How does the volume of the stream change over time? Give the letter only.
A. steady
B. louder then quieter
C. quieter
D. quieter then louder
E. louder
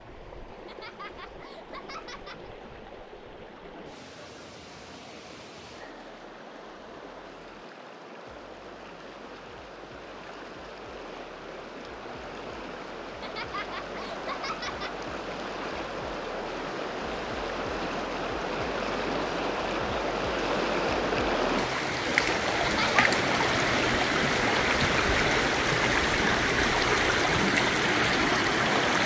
E.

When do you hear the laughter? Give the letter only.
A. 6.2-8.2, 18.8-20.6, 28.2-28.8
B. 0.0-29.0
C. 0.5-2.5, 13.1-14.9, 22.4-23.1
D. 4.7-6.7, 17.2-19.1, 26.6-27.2
C.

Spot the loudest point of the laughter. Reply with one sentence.
The loudest moment of the laughter is at 23 seconds.